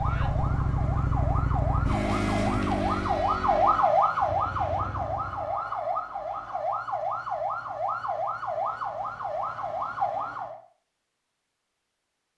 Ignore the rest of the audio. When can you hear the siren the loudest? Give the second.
4 s.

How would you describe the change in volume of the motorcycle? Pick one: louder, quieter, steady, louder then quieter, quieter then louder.
quieter.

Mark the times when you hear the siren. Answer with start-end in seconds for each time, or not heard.
0.0-10.6.